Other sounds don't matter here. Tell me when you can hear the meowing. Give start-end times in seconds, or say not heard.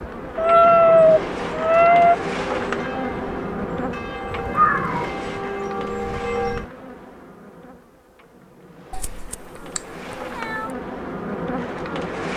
0.3-2.1, 4.3-5.1, 8.9-10.7.